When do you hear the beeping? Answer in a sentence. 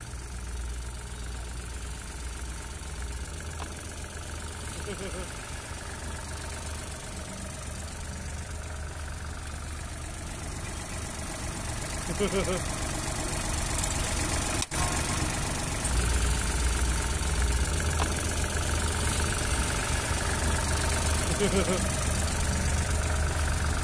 The beeping can't be heard in this clip.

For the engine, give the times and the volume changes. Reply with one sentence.
The engine can be heard from 0.0 to 23.7 s, getting louder.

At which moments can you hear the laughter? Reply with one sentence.
The laughter can be heard from 4.8 to 5.2 s, from 12.1 to 12.6 s and from 21.2 to 21.8 s.